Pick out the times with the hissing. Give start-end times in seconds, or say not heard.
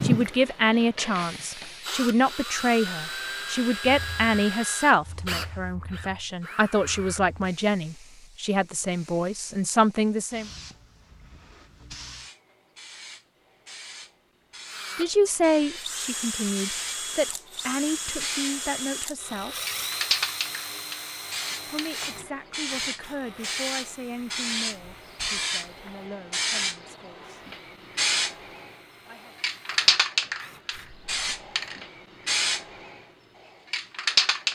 0.0-34.4.